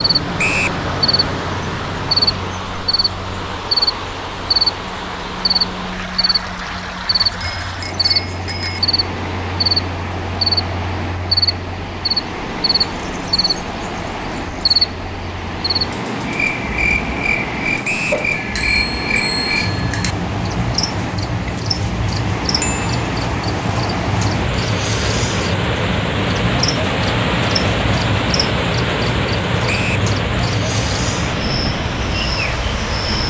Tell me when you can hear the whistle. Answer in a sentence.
You can hear the whistle from 0.3 to 0.8 s, from 17.8 to 18.2 s and from 29.6 to 30.1 s.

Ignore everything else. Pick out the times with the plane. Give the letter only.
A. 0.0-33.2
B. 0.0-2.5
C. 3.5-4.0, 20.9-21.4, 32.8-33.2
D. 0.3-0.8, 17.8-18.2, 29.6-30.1
B.